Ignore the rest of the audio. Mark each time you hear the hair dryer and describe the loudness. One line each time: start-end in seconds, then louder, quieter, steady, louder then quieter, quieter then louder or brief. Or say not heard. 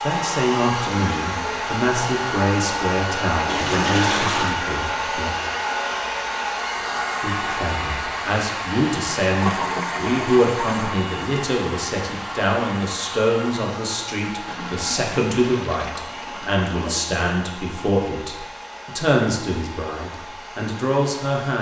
0.0-21.5 quieter.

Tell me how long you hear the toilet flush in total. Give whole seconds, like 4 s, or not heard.
5 s.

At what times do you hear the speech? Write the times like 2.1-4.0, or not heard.
0.0-5.3, 7.2-21.5.